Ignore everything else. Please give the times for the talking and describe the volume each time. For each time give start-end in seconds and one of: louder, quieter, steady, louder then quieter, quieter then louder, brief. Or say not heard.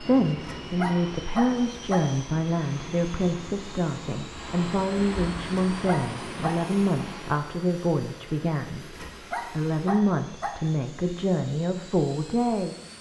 0.0-12.9 steady.